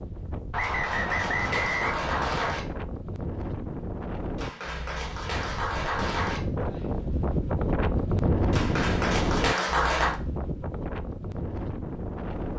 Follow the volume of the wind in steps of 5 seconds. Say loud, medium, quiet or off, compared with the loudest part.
medium, loud, medium.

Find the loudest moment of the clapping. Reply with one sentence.
The volume of the clapping peaks at 10 seconds.